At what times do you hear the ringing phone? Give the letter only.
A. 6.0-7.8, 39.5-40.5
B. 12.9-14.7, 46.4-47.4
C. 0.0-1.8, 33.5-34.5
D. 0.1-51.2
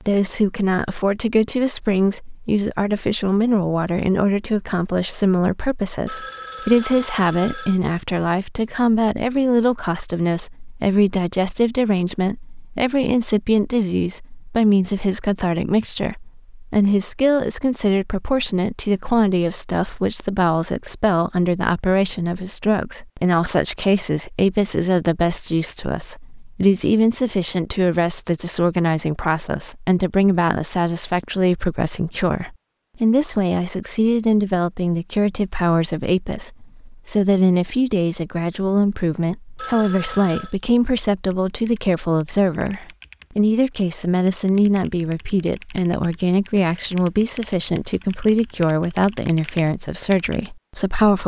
A.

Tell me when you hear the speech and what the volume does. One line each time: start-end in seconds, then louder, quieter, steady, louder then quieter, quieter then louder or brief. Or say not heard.
0.1-51.2 steady.